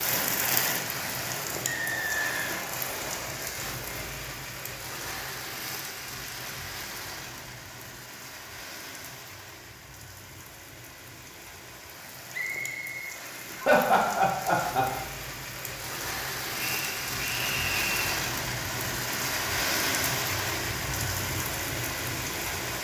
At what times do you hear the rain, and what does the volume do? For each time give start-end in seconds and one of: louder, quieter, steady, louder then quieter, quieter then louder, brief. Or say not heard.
0.0-22.7 quieter then louder.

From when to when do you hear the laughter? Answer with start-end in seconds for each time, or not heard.
13.6-14.8.